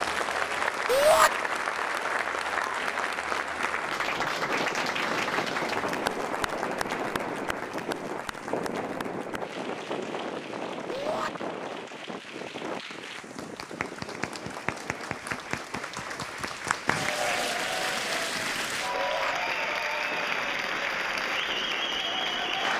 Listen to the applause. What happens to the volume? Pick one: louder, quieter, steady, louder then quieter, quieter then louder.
quieter then louder.